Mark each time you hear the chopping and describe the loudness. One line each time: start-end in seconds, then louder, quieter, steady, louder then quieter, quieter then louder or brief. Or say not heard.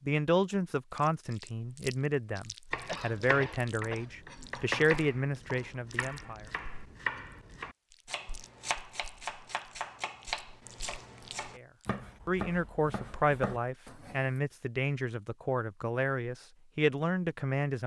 2.7-14.3 steady.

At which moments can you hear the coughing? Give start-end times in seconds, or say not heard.
2.9-4.1.